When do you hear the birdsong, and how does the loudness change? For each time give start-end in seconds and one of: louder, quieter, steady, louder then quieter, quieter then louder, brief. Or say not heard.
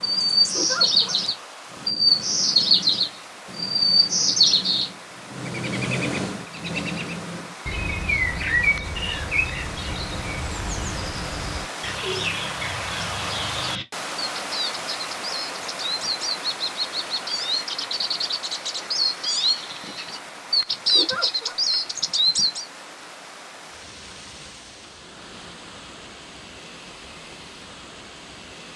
0.0-22.6 quieter then louder.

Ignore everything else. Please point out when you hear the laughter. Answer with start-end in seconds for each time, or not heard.
0.5-1.1, 20.9-21.6.